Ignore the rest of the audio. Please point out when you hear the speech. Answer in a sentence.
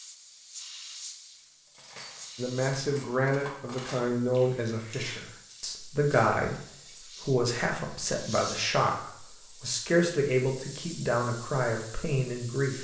You can hear the speech from 2.4 to 12.7 s.